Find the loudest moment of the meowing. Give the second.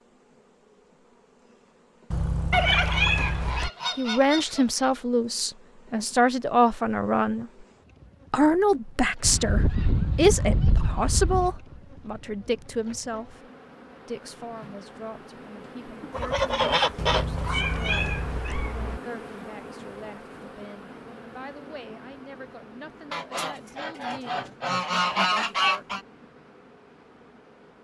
3 s.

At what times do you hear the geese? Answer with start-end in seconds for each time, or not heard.
2.5-4.7, 9.2-11.6, 16.1-18.1, 23.1-26.0.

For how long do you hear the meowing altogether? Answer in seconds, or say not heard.
4 s.